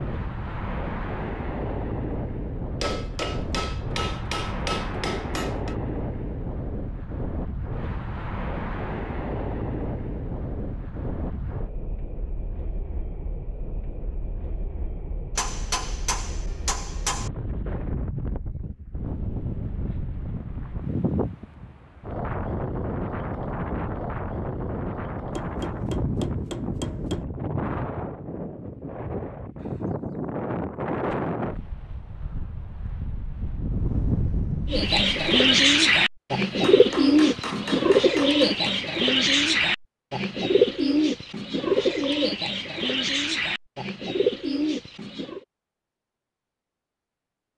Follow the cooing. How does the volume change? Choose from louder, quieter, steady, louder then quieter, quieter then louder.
quieter.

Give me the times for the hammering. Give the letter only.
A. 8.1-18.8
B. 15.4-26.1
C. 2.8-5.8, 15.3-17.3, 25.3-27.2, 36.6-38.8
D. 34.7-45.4
C.